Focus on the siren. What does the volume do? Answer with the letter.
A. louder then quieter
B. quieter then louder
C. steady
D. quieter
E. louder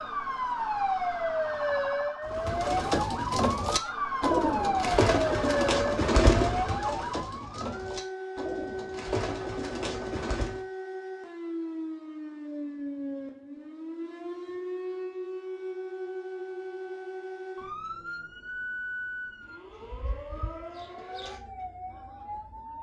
D.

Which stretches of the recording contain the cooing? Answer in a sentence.
You can hear the cooing from 2.2 to 10.7 s.